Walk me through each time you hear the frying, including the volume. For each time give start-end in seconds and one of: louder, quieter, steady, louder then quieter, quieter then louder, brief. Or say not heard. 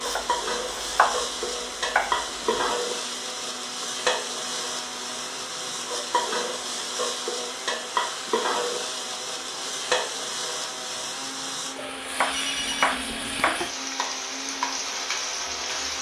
0.0-15.9 steady.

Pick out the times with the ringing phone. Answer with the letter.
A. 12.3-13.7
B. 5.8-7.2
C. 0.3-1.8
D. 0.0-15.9
A.